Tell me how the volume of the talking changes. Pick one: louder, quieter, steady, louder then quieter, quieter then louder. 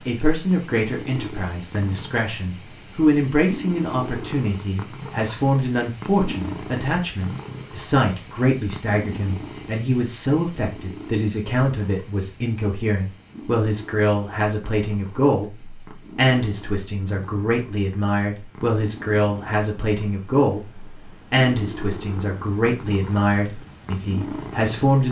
steady.